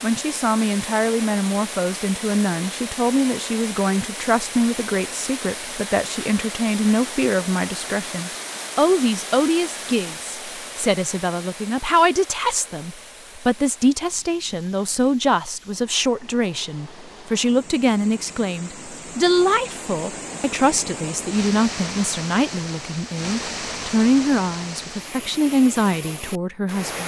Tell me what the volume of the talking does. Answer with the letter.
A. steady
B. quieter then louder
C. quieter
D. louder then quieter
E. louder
A.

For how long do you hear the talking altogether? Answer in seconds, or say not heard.
27 s.